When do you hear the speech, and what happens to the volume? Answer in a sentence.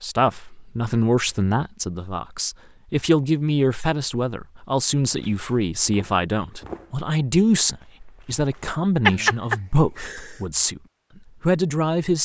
You can hear the speech from 0.0 to 10.8 s, at a steady volume; and briefly from 11.4 to 12.2 s.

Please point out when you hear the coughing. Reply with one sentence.
The coughing can be heard from 9.0 to 10.3 s.